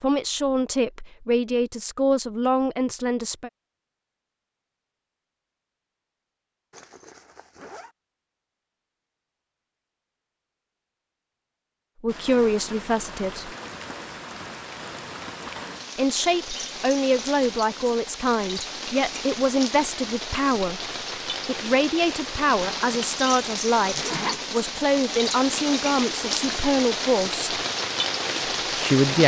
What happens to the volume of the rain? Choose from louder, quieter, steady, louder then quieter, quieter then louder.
louder.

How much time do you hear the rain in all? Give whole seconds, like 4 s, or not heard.
17 s.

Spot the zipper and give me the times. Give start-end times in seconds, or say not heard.
6.7-8.0, 23.9-24.6.